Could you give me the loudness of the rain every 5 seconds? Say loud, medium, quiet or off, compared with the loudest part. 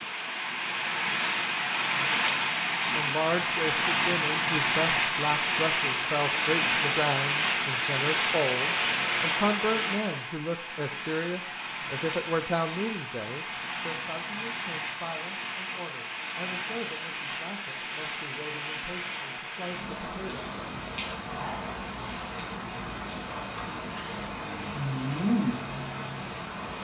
loud, loud, medium, medium, medium, loud.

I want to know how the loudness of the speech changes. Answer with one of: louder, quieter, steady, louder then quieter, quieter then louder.
quieter.